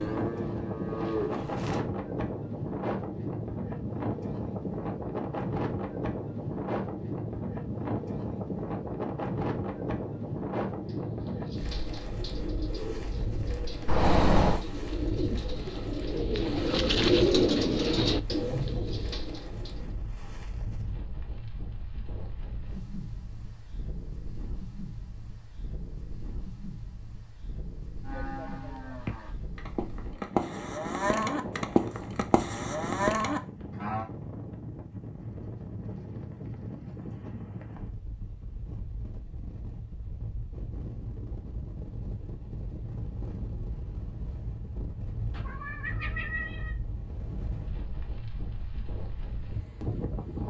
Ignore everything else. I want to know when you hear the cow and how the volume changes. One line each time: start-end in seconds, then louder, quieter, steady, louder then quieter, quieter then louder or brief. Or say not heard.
0.0-1.8 brief
28.1-34.0 louder.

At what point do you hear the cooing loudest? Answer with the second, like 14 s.
17 s.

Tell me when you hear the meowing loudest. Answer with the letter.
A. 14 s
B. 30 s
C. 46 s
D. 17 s
A.